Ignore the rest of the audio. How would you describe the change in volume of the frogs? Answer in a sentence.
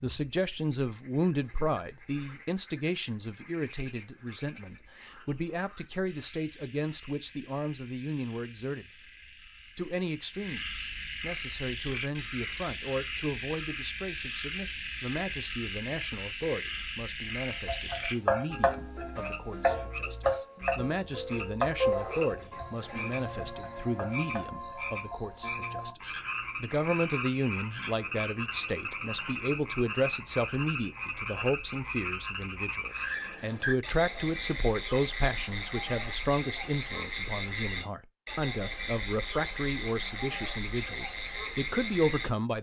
The volume of the frogs goes up.